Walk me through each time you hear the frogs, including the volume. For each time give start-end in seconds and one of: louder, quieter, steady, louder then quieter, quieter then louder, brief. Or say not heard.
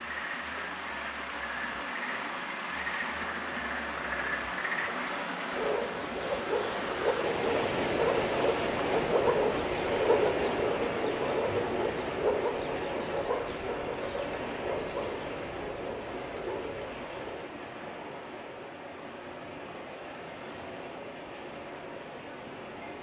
0.0-17.4 louder then quieter.